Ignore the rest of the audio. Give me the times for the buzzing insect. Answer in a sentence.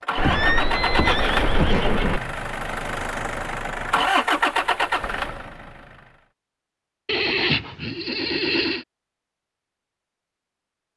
The buzzing insect can't be heard in this clip.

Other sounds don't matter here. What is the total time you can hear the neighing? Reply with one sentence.
You can hear the neighing for 4 seconds altogether.